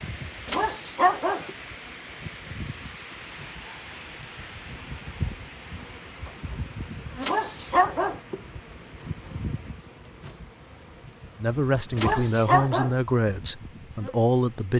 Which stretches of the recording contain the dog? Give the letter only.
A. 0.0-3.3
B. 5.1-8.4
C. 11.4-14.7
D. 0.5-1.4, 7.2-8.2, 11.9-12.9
D.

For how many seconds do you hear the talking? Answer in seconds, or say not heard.
3 s.